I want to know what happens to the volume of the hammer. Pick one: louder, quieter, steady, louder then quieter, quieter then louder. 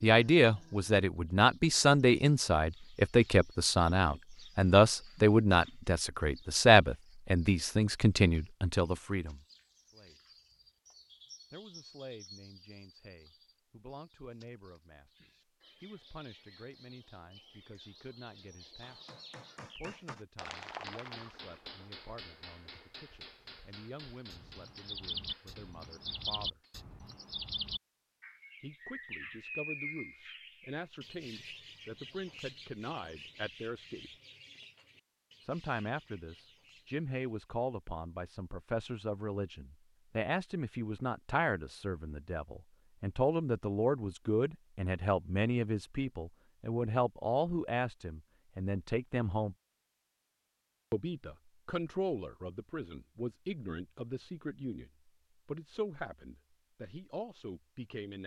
quieter.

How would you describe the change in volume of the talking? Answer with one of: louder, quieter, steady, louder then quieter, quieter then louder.
quieter then louder.